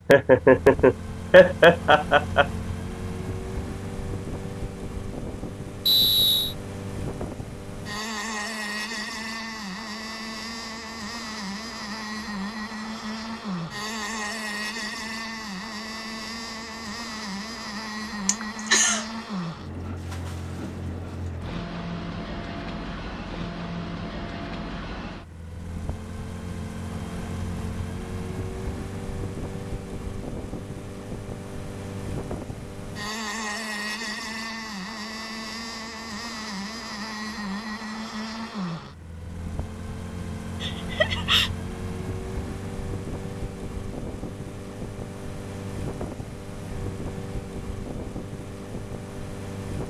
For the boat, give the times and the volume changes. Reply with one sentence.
The boat can be heard from 0.0 to 49.8 s, at a steady volume.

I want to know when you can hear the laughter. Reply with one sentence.
The laughter can be heard from 0.1 to 2.5 s, from 18.2 to 19.1 s and from 40.6 to 41.5 s.